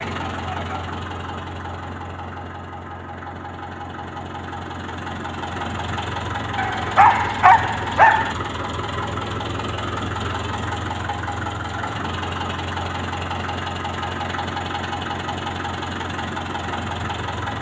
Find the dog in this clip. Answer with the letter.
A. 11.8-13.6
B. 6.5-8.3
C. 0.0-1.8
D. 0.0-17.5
B.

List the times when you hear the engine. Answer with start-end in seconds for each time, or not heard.
0.0-17.5.